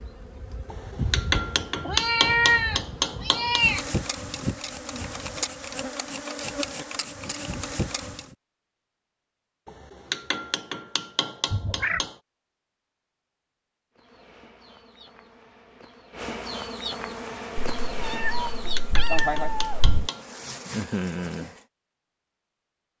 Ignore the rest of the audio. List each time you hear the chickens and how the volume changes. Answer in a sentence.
You can't hear the chickens here.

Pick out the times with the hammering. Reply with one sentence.
You can hear the hammering from 0.7 to 3.6 s, from 9.7 to 12.2 s and from 18.6 to 20.2 s.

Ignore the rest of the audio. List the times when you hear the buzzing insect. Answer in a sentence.
The buzzing insect can be heard from 0.0 to 8.3 s and from 13.9 to 21.6 s.